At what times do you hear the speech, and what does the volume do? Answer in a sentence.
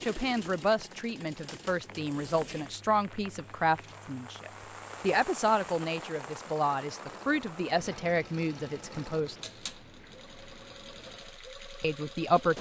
The speech can be heard from 0.0 to 9.3 s, at a steady volume; and briefly from 11.8 to 12.5 s.